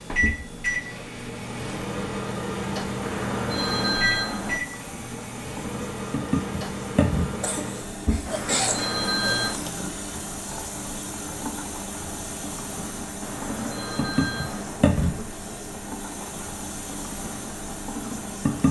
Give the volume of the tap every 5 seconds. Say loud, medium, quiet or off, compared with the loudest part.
medium, loud, loud, loud.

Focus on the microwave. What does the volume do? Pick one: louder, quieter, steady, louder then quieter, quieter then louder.
quieter.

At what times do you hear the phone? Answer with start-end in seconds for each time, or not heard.
3.0-4.6, 8.2-9.6, 13.2-14.8.